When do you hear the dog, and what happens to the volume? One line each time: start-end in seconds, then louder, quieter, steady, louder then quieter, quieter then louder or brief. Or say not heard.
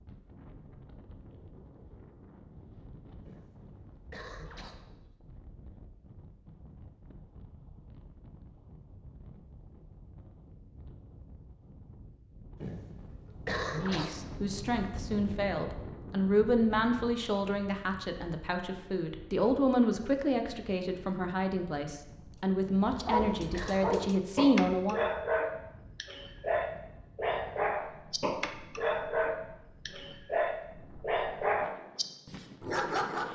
22.9-33.3 steady.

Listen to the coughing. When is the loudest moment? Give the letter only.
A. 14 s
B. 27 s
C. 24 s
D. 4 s
A.